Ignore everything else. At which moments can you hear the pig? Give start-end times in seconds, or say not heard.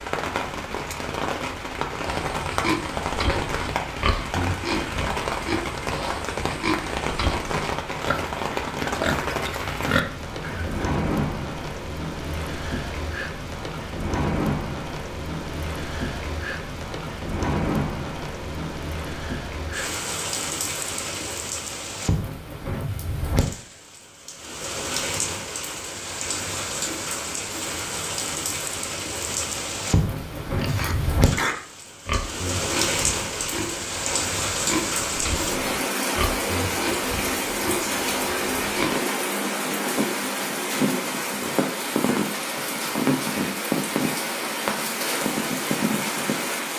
2.0-10.8, 30.4-39.0.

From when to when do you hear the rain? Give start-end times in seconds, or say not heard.
0.0-46.7.